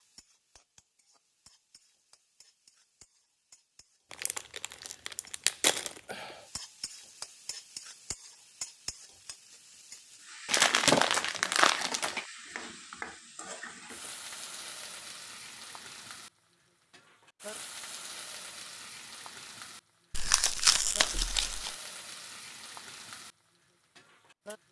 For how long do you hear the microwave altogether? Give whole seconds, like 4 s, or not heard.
not heard.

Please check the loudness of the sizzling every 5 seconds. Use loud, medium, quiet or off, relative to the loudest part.
quiet, loud, loud, loud, loud.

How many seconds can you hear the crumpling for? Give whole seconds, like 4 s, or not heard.
6 s.